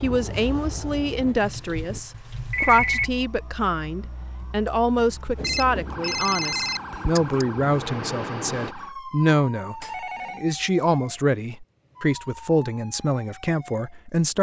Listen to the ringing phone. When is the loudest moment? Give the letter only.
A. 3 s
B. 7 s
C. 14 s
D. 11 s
A.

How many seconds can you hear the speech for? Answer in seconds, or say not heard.
14 s.